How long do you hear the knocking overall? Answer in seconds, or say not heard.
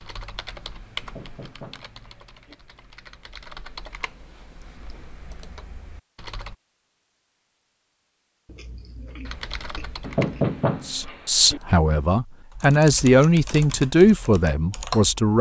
3 s.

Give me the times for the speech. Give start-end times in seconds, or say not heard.
10.8-15.3.